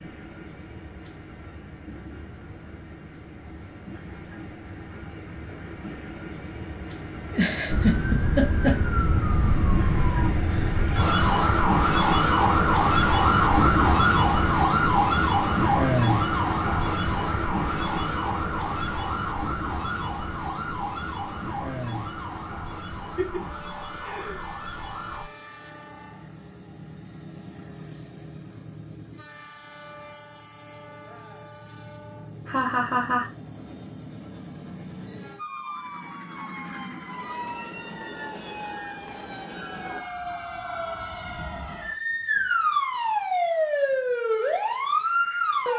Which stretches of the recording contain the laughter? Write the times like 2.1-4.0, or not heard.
7.3-8.8, 23.1-24.6, 32.5-33.3.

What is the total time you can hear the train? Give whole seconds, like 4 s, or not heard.
40 s.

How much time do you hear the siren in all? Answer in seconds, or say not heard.
28 s.